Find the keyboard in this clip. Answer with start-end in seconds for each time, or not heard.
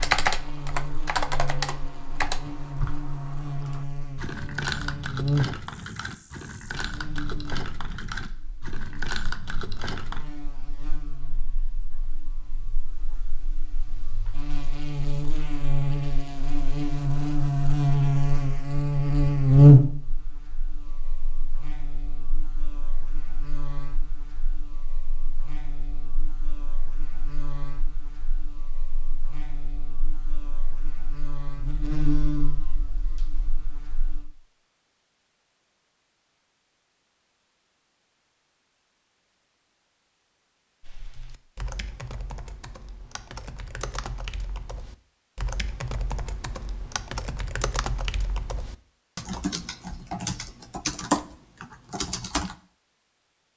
0.0-10.2, 40.8-52.5.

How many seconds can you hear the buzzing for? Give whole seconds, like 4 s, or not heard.
34 s.